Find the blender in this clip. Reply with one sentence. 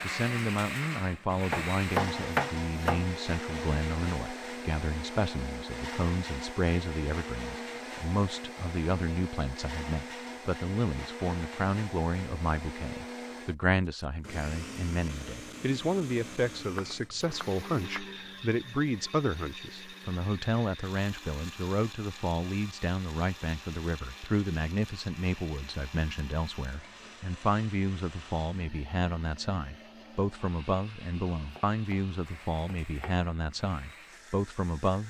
The blender can be heard from 0.0 to 35.0 s.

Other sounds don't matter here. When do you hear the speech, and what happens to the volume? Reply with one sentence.
You can hear the speech from 0.0 to 35.0 s, at a steady volume.